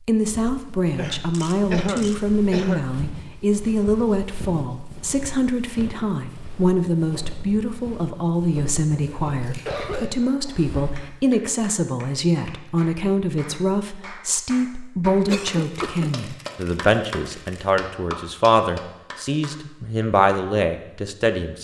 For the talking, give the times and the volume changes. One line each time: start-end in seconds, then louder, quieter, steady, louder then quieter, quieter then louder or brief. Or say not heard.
0.1-21.5 steady.